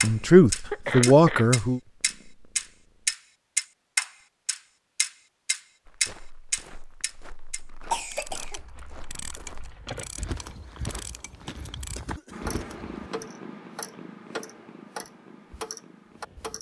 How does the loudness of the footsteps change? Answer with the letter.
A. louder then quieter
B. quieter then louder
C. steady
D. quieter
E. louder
E.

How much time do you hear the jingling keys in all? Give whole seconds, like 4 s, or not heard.
2 s.